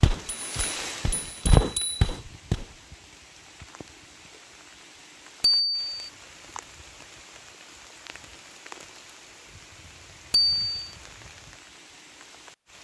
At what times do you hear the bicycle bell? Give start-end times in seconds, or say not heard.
0.2-2.1, 5.4-6.1, 10.3-10.9.